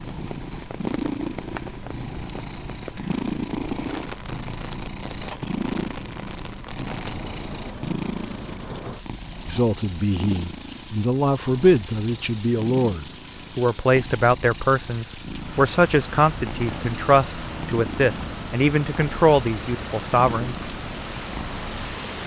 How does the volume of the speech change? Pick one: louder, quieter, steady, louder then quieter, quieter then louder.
steady.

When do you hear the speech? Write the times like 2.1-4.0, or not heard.
9.4-20.6.